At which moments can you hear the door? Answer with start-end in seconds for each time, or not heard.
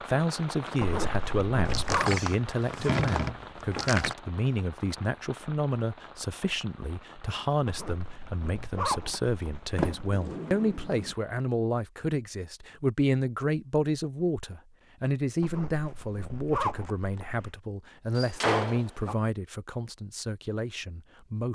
1.6-4.2, 9.8-11.2, 18.1-19.1.